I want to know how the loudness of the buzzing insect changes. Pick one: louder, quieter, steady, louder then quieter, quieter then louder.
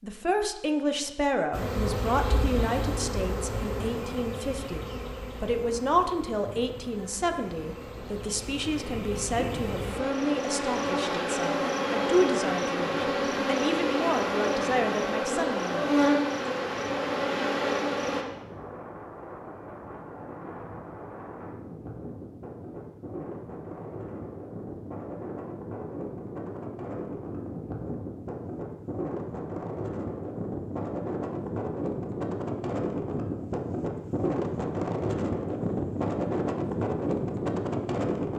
quieter then louder.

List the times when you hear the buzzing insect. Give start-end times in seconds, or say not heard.
1.5-18.2.